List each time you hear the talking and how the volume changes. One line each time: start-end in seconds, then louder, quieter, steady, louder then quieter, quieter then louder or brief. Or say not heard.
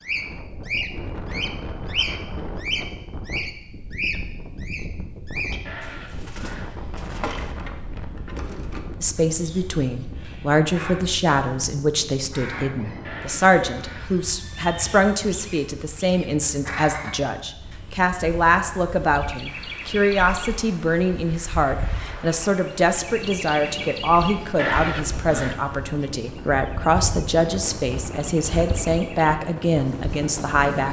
9.0-30.8 steady.